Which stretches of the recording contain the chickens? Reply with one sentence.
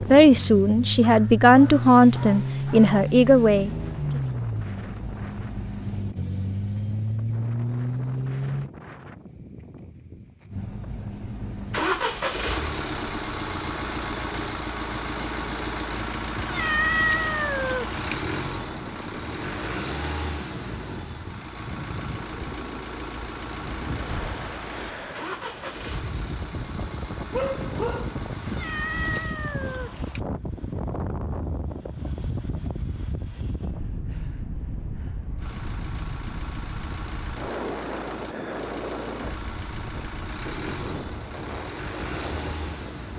You can't hear the chickens here.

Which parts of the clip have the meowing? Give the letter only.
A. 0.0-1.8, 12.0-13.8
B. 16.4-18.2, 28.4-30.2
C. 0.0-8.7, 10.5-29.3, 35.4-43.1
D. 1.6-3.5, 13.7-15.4
B.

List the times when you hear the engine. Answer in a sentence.
You can hear the engine from 0.0 to 8.7 s, from 10.5 to 29.3 s and from 35.4 to 43.1 s.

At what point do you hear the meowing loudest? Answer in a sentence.
The volume of the meowing peaks at 17 seconds.